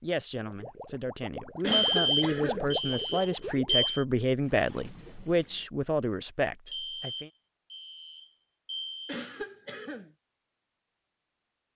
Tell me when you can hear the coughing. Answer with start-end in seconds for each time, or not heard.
1.6-3.5, 9.1-10.1.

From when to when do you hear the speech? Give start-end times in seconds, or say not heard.
0.0-7.3.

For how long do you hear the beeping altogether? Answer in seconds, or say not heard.
5 s.